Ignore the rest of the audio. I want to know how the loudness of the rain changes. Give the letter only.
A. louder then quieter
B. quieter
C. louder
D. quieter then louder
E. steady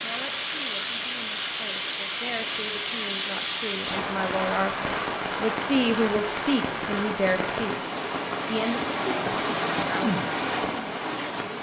E.